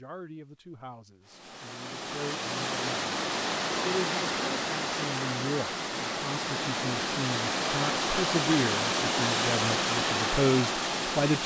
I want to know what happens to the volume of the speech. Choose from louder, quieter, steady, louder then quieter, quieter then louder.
louder.